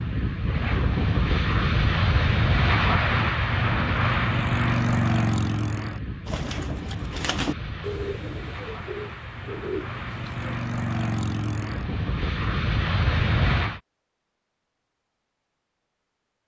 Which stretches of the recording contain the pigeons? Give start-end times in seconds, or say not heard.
6.2-10.6.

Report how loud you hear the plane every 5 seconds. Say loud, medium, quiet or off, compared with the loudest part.
loud, medium, loud, off.